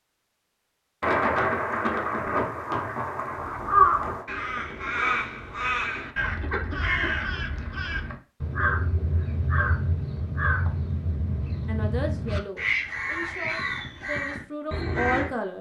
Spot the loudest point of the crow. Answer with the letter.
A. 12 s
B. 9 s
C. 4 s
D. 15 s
C.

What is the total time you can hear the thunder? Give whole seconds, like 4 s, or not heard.
3 s.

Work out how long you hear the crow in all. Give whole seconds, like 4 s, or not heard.
12 s.